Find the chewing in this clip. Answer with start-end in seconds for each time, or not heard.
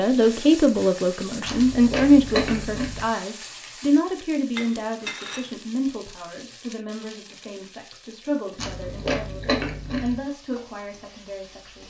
1.4-3.0, 8.6-10.2.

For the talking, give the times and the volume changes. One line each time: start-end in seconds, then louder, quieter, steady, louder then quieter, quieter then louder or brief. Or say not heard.
0.0-11.8 quieter.